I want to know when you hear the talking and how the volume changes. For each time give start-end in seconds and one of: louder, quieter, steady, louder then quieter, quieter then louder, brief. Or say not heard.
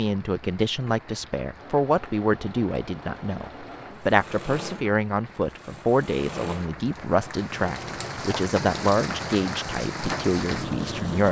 0.0-11.2 steady.